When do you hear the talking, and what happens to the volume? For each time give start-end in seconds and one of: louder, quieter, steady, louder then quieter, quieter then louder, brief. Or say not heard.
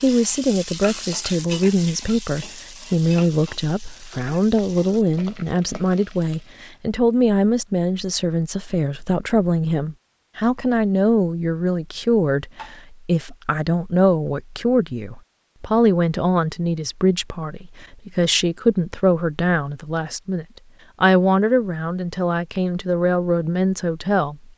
0.0-24.4 steady.